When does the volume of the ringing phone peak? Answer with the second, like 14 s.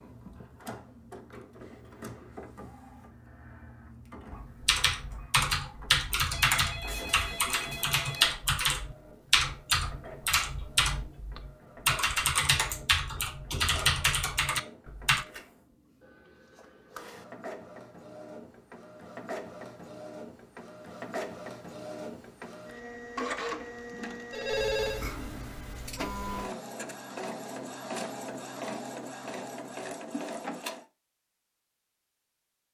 25 s.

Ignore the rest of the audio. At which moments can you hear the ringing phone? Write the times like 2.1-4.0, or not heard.
6.3-8.3, 24.3-25.1.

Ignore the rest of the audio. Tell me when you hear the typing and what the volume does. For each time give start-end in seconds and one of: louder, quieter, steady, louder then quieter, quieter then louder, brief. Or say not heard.
4.3-15.2 steady.